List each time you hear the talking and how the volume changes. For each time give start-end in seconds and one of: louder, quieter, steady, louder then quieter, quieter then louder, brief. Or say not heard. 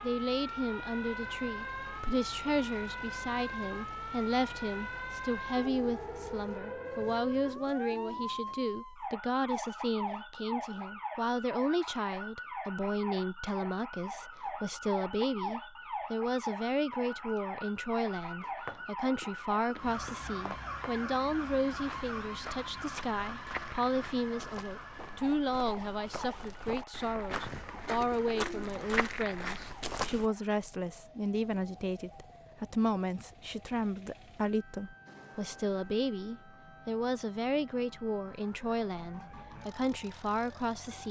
0.0-41.0 steady.